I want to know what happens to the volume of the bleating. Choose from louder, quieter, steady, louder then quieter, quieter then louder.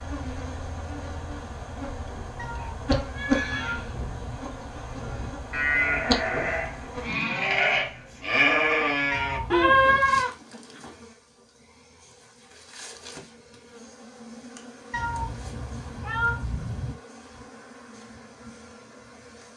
louder.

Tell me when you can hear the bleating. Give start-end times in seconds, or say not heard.
2.5-10.9.